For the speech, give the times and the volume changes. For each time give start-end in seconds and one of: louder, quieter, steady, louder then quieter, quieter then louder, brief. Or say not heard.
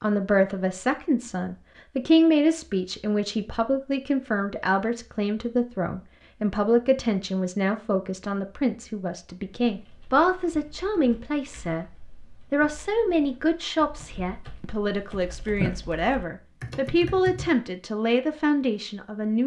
0.0-19.4 steady.